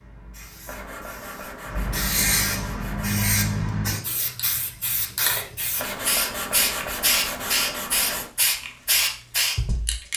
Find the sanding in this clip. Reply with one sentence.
You can hear the sanding from 0.7 to 3.2 s and from 5.8 to 8.3 s.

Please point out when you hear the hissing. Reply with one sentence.
The hissing can be heard from 0.0 to 10.1 s.